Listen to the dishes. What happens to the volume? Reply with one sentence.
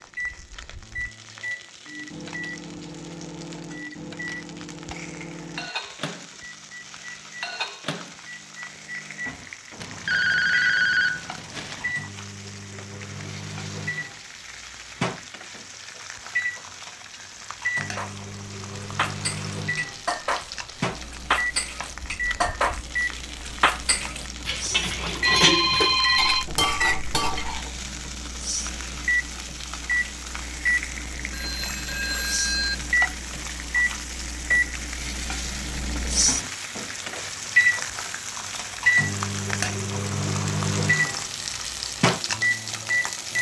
The volume of the dishes goes up.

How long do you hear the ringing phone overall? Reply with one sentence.
The ringing phone can be heard for 5 seconds in total.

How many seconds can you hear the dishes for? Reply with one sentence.
You can hear the dishes for 10 seconds altogether.